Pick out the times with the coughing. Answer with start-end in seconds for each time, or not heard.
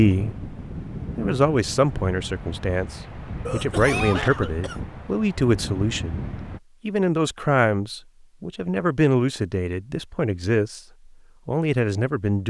3.5-4.8.